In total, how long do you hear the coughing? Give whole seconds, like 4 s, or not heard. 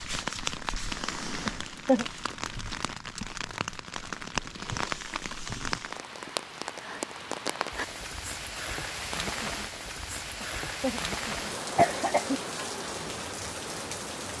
2 s.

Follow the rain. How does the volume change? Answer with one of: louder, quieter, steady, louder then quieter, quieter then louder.
steady.